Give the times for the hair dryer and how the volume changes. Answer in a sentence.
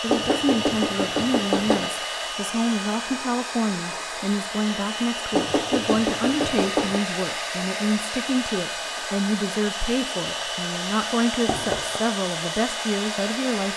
The hair dryer can be heard from 0.0 to 13.7 s, at a steady volume.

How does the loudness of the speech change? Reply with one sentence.
The loudness of the speech stays about the same.